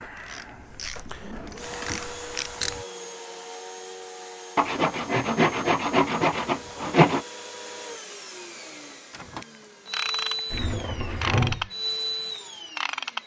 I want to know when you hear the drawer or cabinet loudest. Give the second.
11 s.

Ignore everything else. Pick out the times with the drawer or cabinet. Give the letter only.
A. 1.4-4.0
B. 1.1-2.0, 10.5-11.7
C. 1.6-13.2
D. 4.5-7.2
B.